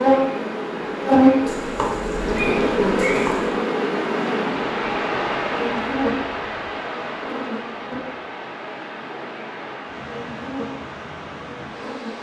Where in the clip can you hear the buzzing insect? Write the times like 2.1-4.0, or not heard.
0.0-12.1.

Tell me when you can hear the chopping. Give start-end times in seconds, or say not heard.
1.4-3.5.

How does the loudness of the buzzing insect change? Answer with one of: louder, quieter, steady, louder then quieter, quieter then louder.
quieter.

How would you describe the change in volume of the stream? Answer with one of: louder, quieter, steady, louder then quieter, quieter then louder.
louder then quieter.